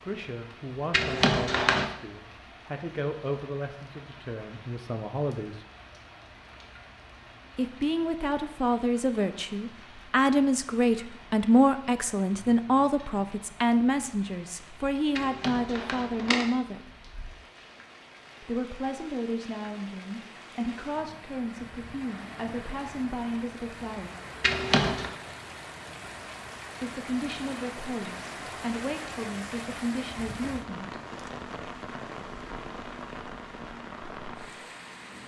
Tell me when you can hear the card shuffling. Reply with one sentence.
You can hear the card shuffling from 0.9 to 1.9 s, from 15.2 to 16.4 s and from 24.4 to 25.1 s.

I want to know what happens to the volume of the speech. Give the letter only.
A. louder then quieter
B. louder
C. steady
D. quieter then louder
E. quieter
A.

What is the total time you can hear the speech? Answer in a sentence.
The speech can be heard for 25 seconds in total.